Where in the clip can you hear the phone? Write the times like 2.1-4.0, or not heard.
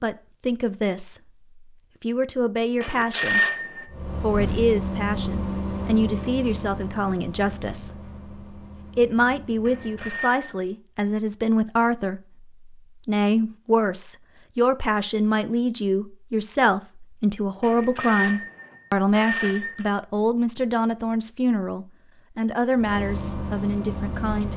2.8-3.9, 9.7-10.6, 17.6-19.9.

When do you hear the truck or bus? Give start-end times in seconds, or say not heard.
3.9-10.3, 22.8-24.5.